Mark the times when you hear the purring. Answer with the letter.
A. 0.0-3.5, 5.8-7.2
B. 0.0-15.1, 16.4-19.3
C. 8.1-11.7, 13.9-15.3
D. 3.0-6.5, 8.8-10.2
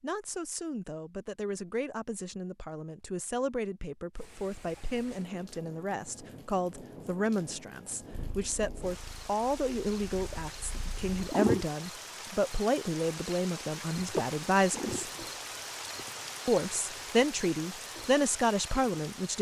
C.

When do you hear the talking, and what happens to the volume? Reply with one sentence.
The talking can be heard from 0.0 to 15.1 s, getting louder; and briefly from 16.4 to 19.3 s.